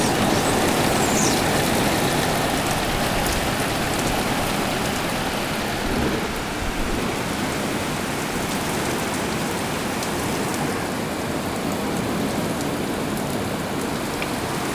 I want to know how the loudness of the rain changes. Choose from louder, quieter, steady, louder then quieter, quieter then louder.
steady.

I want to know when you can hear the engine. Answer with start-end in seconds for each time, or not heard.
0.0-6.2.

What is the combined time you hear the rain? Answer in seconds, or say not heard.
15 s.